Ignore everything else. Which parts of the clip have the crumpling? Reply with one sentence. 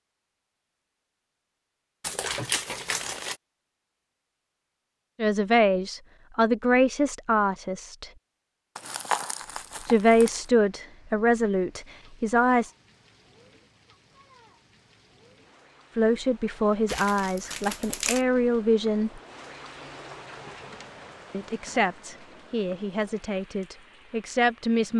The crumpling can be heard from 2.0 to 3.4 s, from 8.8 to 10.4 s and from 16.9 to 18.2 s.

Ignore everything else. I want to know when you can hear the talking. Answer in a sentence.
The talking can be heard from 5.2 to 8.1 s, from 9.8 to 12.7 s, from 15.9 to 19.2 s and from 21.3 to 24.9 s.